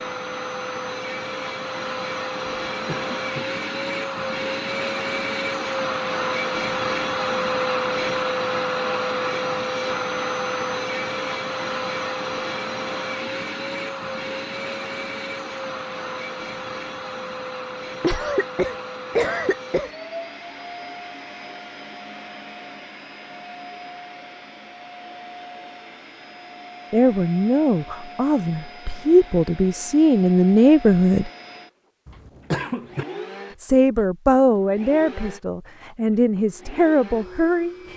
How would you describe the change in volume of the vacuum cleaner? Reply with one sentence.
The volume of the vacuum cleaner goes down.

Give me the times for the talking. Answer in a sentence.
You can hear the talking from 26.9 to 31.3 s and from 33.6 to 37.9 s.